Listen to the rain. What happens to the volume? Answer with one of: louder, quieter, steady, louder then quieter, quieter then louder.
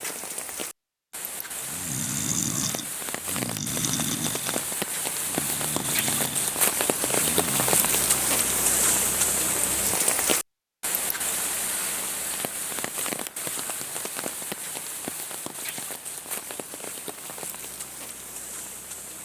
louder then quieter.